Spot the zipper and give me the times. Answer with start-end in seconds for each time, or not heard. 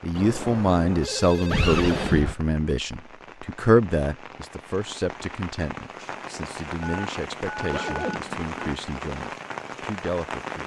1.5-2.4, 7.7-8.5.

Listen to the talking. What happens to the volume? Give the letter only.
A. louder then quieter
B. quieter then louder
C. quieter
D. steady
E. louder
C.